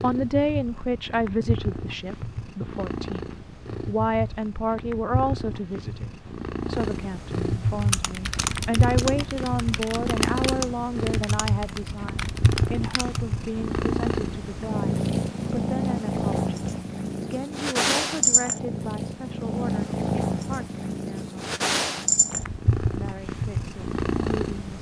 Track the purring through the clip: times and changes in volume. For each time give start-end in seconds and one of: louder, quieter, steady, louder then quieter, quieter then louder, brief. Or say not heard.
0.0-24.7 louder.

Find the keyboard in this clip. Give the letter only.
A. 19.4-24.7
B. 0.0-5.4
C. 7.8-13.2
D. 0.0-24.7
C.